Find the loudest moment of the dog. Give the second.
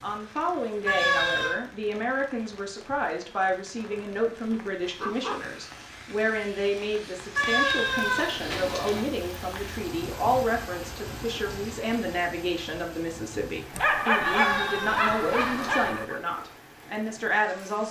14 s.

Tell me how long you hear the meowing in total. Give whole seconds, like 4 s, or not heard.
4 s.